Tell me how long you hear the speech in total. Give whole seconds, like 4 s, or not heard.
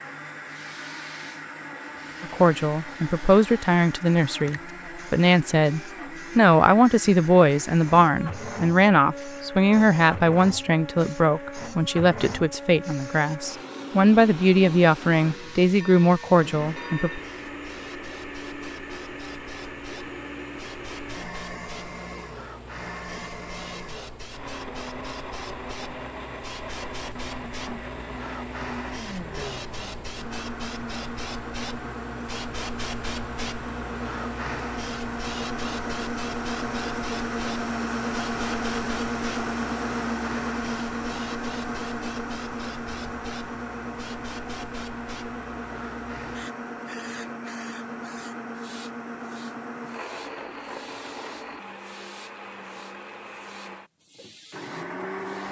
15 s.